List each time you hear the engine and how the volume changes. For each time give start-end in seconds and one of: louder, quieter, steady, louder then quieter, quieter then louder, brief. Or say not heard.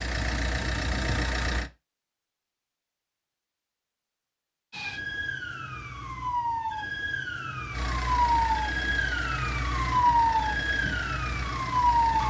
0.0-1.7 brief
7.7-12.2 steady.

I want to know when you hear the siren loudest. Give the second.
10 s.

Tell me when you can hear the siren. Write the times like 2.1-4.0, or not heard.
4.7-12.2.